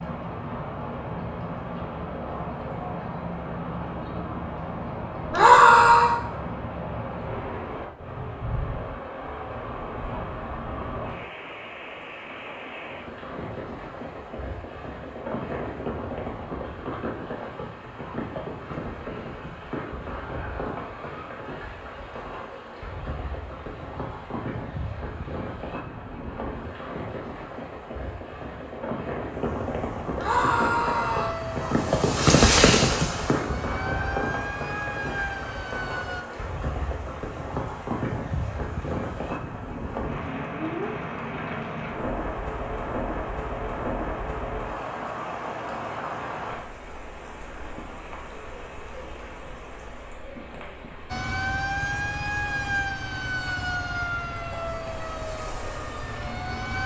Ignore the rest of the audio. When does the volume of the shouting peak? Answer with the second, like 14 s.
6 s.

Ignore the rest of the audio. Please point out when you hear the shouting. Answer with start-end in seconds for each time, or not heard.
5.3-6.2, 30.1-31.4.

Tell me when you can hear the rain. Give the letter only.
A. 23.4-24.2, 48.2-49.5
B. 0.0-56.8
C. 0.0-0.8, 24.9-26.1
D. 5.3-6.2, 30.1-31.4
B.